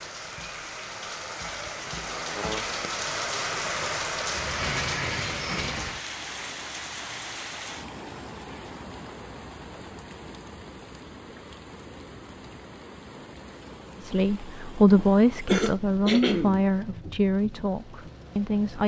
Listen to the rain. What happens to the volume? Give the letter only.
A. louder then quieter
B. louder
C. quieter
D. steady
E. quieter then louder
C.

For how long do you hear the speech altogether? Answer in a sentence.
The speech can be heard for 5 seconds in total.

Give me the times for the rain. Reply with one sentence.
The rain can be heard from 0.0 to 18.8 s.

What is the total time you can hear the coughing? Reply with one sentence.
The coughing can be heard for 2 seconds in total.